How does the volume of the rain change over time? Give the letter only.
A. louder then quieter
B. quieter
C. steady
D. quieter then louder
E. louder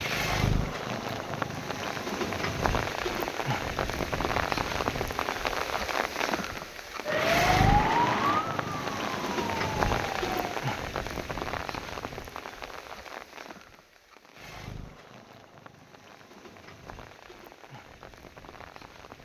B.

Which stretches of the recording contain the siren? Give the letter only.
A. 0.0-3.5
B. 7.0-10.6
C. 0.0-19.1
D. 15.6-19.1
B.